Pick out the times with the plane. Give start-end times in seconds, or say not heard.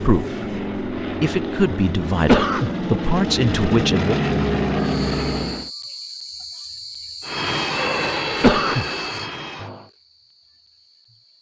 0.0-5.7, 7.2-9.9.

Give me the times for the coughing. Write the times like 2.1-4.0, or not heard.
2.2-2.7, 8.4-8.8.